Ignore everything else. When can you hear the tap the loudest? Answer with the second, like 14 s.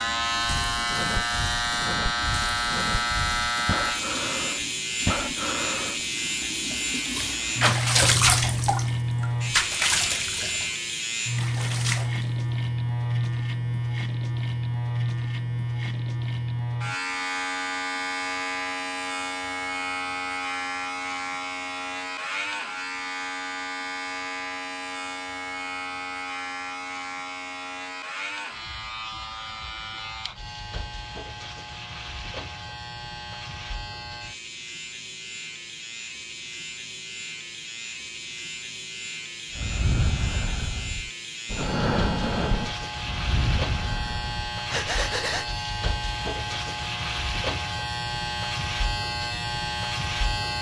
8 s.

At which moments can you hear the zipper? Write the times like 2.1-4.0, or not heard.
not heard.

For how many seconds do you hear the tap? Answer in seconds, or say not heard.
12 s.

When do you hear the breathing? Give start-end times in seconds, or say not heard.
0.4-6.0, 39.5-45.5.